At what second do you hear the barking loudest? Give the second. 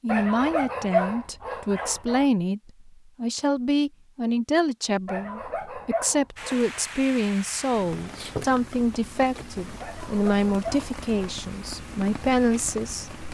1 s.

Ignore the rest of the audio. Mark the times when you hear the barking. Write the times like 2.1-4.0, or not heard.
0.1-2.2, 5.0-6.8, 9.8-11.4.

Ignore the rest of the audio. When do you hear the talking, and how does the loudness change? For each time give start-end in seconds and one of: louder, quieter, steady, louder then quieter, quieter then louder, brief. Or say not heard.
0.0-13.1 steady.